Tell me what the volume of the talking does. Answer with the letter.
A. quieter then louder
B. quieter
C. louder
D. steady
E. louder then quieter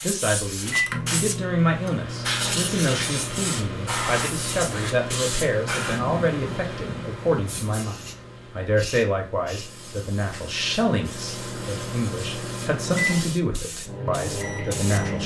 D.